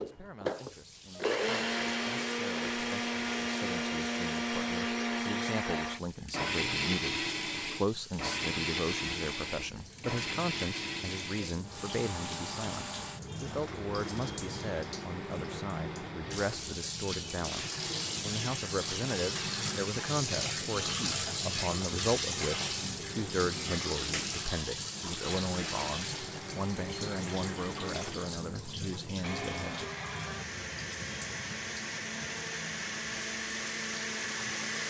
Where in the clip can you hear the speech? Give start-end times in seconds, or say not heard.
0.0-29.9.